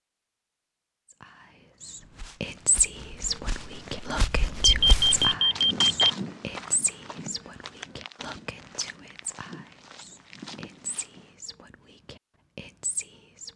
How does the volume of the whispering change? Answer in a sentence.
The volume of the whispering goes down.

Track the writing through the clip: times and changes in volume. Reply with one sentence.
The writing can't be heard in this clip.